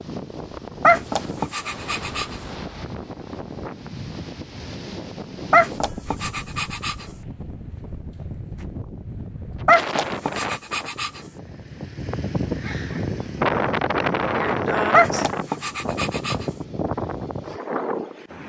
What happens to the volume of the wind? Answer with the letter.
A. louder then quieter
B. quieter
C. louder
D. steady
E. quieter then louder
C.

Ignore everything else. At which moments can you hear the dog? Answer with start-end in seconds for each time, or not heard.
0.8-2.4, 5.5-7.0, 9.7-11.2, 14.9-16.4.